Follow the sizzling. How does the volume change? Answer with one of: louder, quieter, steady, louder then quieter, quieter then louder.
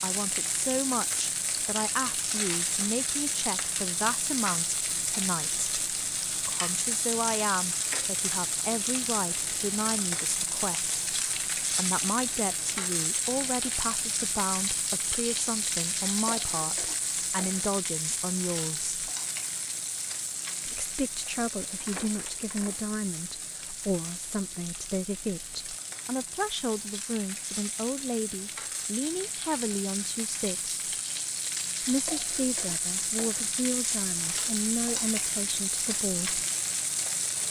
quieter then louder.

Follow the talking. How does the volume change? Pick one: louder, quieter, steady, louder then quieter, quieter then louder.
steady.